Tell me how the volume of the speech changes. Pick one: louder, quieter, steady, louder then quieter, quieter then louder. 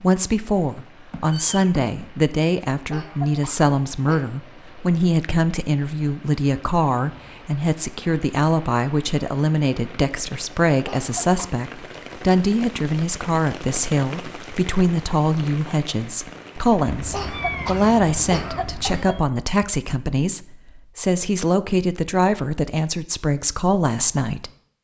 steady.